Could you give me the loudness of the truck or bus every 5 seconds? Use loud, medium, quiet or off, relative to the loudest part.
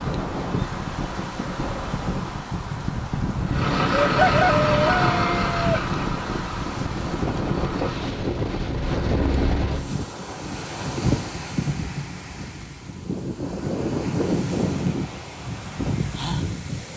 loud, medium, off, off.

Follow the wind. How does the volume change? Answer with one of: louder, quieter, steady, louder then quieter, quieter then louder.
steady.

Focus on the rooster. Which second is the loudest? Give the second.
4 s.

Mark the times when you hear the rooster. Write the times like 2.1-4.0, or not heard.
4.0-5.8.